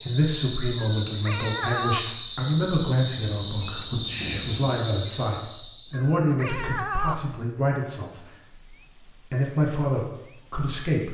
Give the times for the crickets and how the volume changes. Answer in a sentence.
You can hear the crickets from 0.0 to 11.1 s, getting quieter.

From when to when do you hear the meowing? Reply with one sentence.
You can hear the meowing from 0.8 to 2.0 s and from 5.9 to 7.2 s.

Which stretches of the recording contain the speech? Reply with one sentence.
The speech can be heard from 0.0 to 11.1 s.